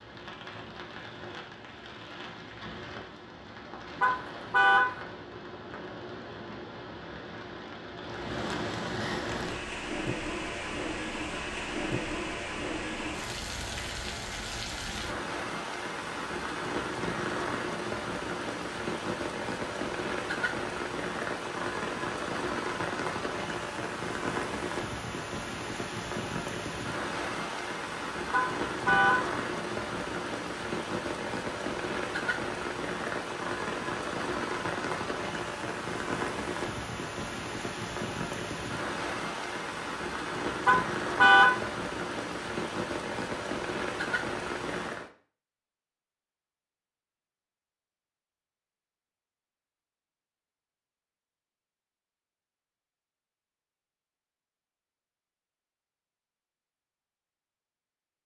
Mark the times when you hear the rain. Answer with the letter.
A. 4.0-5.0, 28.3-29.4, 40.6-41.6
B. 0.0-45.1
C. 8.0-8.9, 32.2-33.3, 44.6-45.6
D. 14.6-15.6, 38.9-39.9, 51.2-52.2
B.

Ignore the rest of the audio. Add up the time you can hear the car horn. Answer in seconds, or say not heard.
3 s.